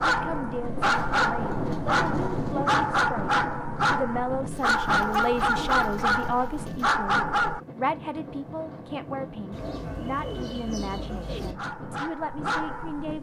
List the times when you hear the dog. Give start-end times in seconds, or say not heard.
0.0-7.6, 11.5-13.1.